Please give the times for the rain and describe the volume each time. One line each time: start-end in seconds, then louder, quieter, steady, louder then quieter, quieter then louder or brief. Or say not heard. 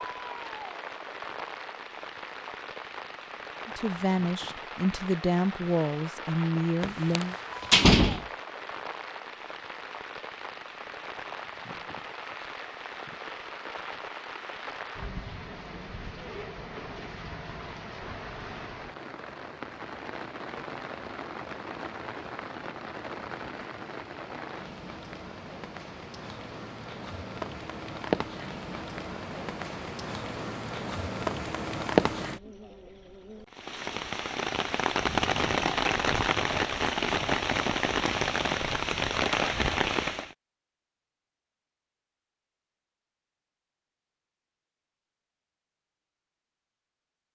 0.0-40.4 louder.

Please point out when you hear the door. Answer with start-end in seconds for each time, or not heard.
6.8-8.2.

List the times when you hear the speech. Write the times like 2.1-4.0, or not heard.
3.6-7.3.